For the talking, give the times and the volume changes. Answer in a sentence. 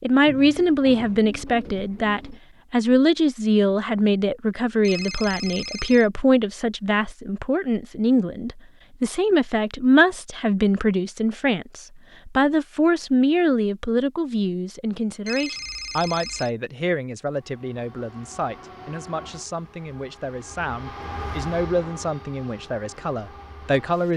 You can hear the talking from 0.0 to 24.1 s, getting quieter.